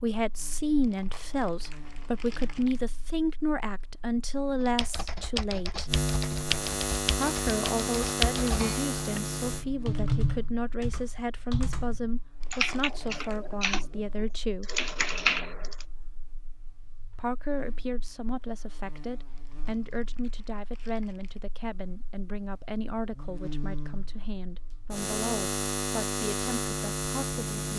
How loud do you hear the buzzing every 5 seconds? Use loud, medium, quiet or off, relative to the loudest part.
quiet, loud, quiet, quiet, quiet, loud.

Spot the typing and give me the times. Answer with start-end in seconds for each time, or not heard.
4.6-15.8.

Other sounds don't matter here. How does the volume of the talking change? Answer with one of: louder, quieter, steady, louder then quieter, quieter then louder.
quieter.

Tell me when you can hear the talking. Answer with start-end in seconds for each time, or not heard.
0.0-6.0, 7.2-14.8, 17.1-27.4.